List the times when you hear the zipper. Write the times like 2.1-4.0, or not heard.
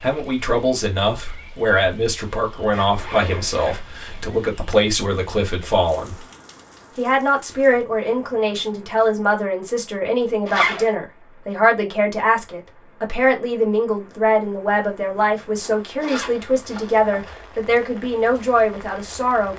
2.7-4.3, 10.4-10.8, 15.6-17.4.